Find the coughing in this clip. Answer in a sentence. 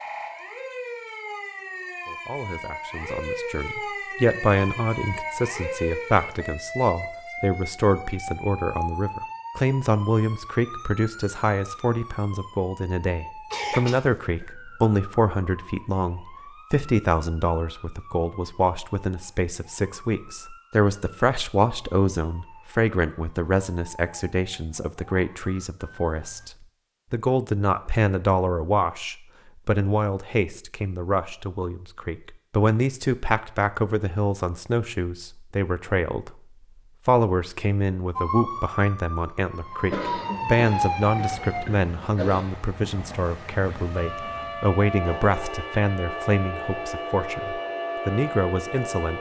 The coughing can be heard from 13.5 to 14.5 s and from 39.9 to 42.5 s.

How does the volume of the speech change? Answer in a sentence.
The loudness of the speech stays about the same.